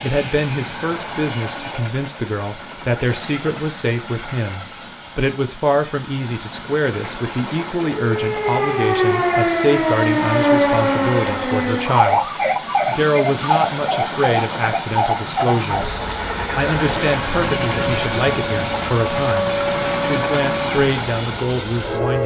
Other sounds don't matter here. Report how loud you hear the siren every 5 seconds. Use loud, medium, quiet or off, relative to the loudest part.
off, loud, loud, medium, medium.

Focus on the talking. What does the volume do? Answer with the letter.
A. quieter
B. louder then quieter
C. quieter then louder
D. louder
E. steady
E.